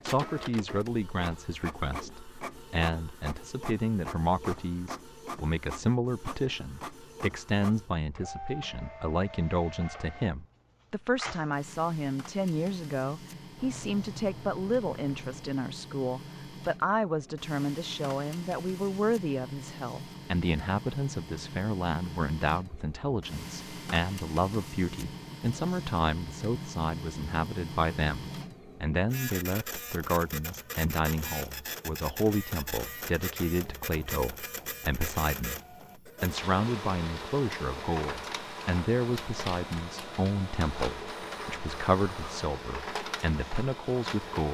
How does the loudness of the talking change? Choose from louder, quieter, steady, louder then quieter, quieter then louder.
steady.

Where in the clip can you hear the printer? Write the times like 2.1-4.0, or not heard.
0.0-44.4.